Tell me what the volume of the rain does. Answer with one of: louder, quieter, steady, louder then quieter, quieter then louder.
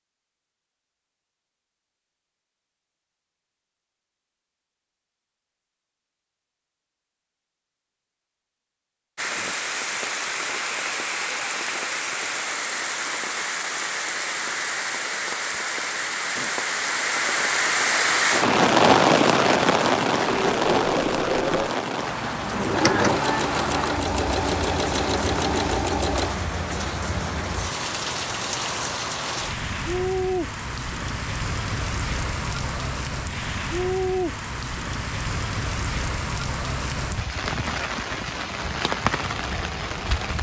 louder then quieter.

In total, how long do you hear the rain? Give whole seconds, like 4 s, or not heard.
31 s.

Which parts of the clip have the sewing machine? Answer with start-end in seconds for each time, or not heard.
20.2-26.4.